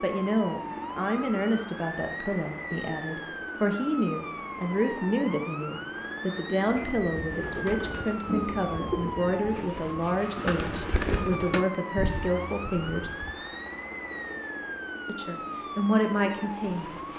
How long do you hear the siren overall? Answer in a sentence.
The siren can be heard for 17 seconds in total.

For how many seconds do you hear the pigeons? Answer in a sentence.
The pigeons can be heard for 7 seconds in total.